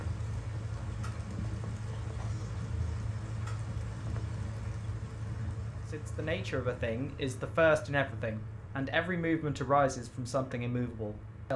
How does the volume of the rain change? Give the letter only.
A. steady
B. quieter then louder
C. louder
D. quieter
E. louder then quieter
D.